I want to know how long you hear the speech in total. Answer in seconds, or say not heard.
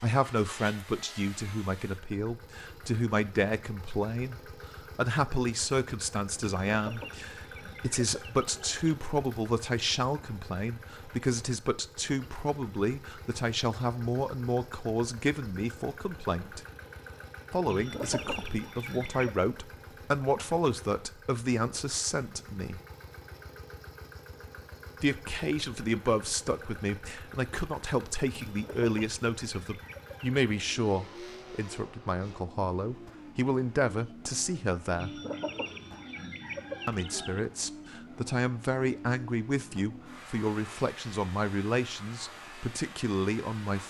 39 s.